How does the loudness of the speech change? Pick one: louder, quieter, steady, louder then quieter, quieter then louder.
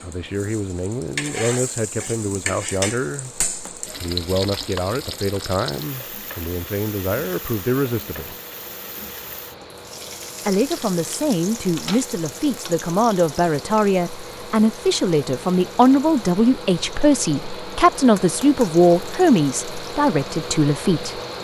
louder.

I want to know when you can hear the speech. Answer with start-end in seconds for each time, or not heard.
0.0-8.3, 10.4-21.2.